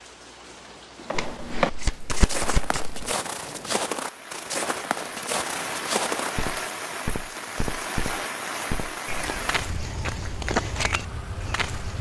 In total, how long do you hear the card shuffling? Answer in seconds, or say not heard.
2 s.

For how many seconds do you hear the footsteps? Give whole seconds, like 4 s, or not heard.
11 s.